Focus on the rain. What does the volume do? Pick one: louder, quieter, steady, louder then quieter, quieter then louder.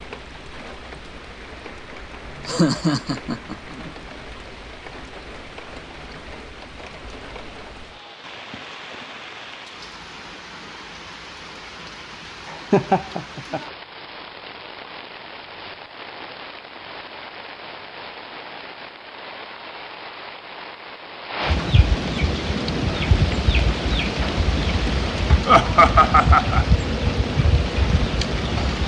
louder.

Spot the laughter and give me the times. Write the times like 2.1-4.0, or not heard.
2.5-3.9, 12.5-13.6, 25.4-26.6.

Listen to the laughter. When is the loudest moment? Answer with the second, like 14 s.
26 s.